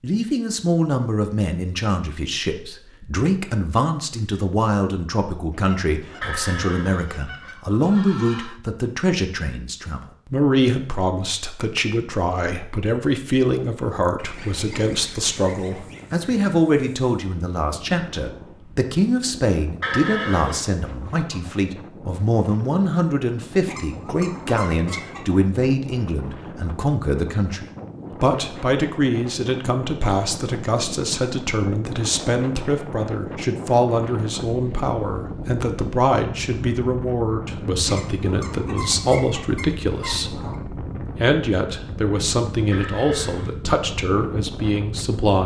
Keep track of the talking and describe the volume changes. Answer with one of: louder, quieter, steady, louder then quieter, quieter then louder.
steady.